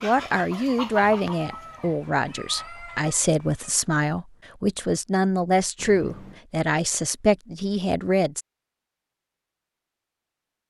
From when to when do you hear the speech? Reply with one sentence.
The speech can be heard from 0.0 to 8.4 s.